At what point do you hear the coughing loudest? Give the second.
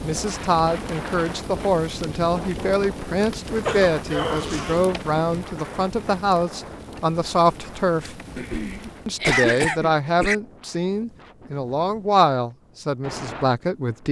9 s.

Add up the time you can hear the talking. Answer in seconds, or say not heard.
13 s.